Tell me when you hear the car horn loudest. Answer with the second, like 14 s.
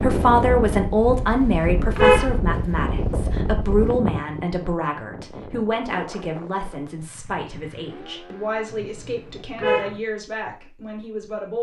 2 s.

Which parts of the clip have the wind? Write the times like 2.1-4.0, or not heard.
0.0-7.1.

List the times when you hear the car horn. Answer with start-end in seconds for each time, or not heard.
1.1-2.4, 8.7-10.0.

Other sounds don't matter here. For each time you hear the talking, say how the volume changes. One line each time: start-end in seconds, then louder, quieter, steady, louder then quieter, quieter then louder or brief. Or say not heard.
0.0-11.5 quieter.